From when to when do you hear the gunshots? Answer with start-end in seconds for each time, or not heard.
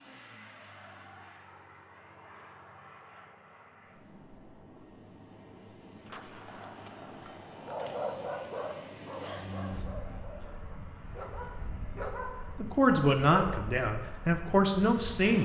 6.0-7.9.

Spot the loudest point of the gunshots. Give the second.
6 s.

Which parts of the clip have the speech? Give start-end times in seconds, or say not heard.
12.6-15.4.